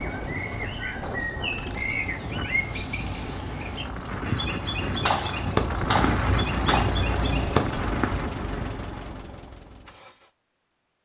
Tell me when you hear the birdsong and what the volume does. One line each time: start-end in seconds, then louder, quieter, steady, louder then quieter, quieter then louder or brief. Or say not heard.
0.0-8.2 steady.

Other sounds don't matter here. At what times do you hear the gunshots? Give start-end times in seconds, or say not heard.
5.0-7.0.